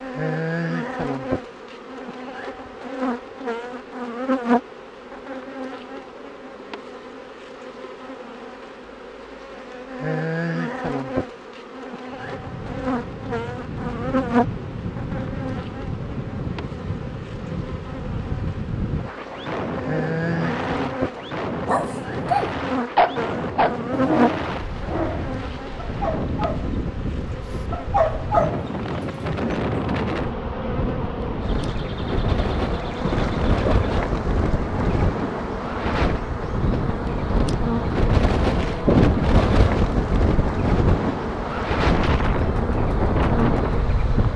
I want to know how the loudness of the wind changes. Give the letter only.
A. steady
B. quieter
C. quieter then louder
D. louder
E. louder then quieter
D.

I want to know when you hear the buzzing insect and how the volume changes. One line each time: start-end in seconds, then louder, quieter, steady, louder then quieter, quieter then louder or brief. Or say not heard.
0.0-44.3 steady.